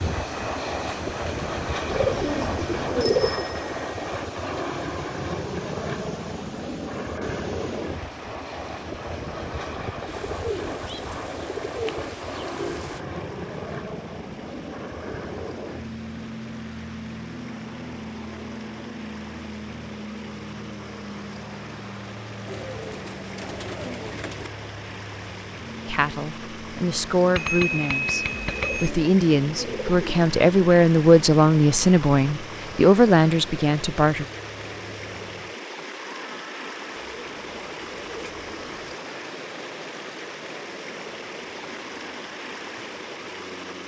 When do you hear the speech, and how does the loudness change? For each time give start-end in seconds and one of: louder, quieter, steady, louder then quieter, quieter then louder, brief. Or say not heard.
25.9-34.2 louder.